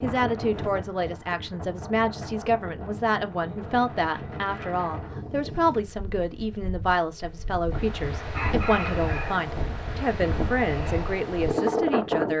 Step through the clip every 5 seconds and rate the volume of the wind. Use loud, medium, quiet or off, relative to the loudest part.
medium, medium, loud.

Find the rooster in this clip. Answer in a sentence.
You can hear the rooster from 8.2 to 9.4 s.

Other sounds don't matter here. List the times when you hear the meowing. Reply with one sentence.
The meowing can't be heard in this clip.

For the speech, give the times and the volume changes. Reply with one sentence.
The speech can be heard from 0.0 to 12.3 s, at a steady volume.